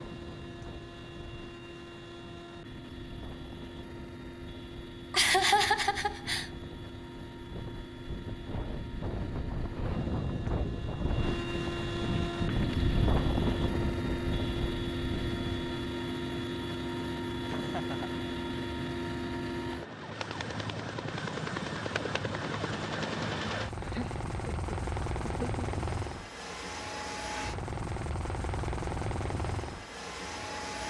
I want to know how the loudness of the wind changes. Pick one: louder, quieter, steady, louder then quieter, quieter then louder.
louder.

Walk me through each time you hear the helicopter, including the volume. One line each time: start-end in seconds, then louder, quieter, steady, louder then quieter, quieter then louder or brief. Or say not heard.
0.0-30.8 louder.